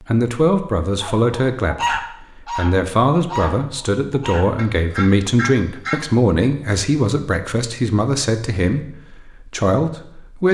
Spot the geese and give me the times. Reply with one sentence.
The geese can be heard from 1.0 to 6.1 s.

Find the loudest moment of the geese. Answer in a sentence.
The loudest moment of the geese is at 2 seconds.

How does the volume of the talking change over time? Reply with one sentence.
The volume of the talking stays about the same.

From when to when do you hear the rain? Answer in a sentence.
The rain can't be heard in this clip.